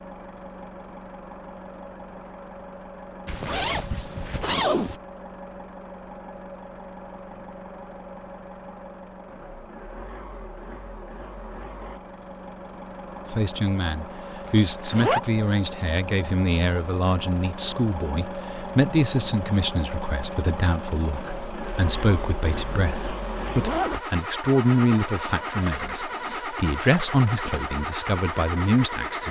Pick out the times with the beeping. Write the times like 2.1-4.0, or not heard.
not heard.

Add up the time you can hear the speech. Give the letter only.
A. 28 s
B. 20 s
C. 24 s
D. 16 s
D.